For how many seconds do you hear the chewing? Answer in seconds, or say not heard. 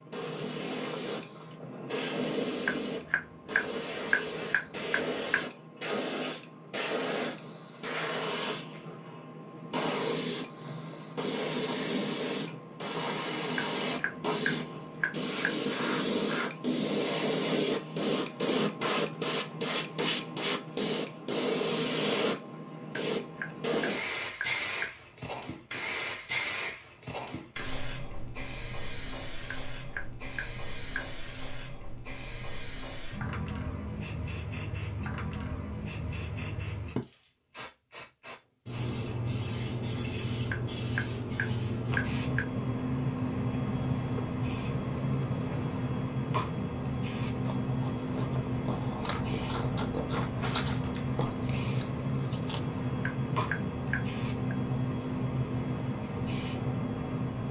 5 s.